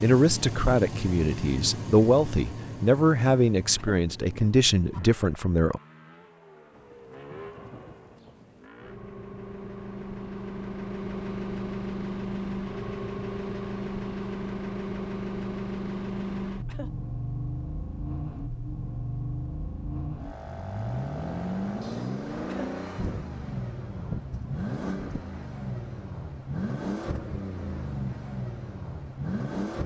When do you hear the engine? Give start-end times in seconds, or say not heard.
0.0-29.8.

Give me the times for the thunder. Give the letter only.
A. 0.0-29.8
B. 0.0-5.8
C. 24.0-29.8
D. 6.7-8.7
D.